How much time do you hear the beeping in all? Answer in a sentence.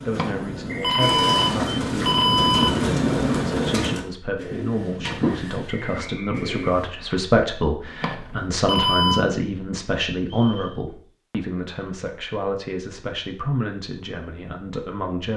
The beeping can be heard for 4 seconds in total.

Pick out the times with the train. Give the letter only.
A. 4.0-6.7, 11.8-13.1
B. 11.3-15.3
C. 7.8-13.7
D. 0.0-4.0
D.